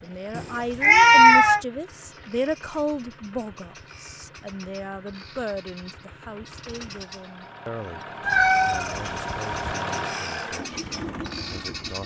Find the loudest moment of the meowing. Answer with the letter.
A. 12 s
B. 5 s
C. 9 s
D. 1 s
D.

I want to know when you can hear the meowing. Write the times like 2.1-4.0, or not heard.
0.3-1.6, 8.2-9.8.